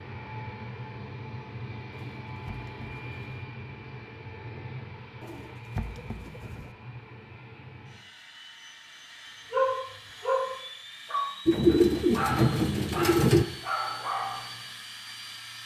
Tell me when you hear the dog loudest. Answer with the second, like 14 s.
10 s.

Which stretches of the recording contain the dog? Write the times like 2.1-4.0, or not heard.
9.5-14.6.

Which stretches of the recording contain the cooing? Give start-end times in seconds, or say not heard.
1.9-3.2, 5.2-6.8, 11.4-13.4.